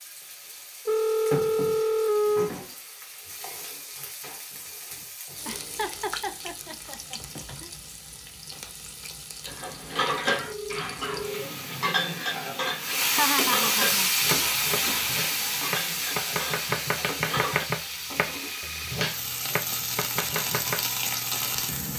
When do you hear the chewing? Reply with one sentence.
You can't hear the chewing here.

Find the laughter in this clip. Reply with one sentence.
The laughter can be heard from 5.5 to 7.8 s and from 13.1 to 14.2 s.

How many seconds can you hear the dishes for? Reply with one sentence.
You can hear the dishes for 8 seconds altogether.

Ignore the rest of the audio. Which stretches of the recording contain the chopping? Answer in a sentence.
You can hear the chopping from 14.2 to 20.9 s.